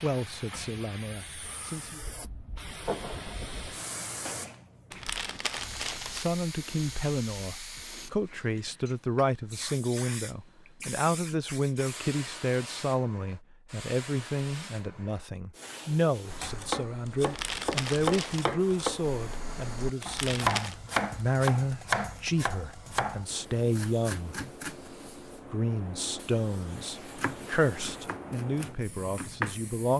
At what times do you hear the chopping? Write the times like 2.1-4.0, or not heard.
16.2-24.9, 27.1-29.9.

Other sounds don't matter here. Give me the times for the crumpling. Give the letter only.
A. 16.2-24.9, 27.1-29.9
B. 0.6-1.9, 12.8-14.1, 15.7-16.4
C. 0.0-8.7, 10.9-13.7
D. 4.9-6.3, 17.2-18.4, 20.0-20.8
D.